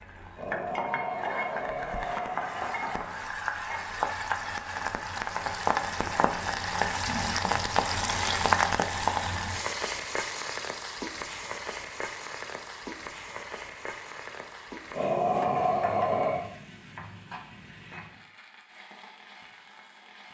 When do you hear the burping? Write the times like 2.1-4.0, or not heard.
0.3-3.0, 14.9-16.4.